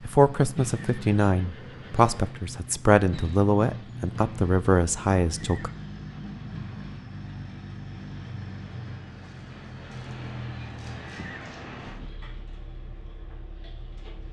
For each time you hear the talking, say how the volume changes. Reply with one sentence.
You can hear the talking from 0.1 to 5.7 s, at a steady volume.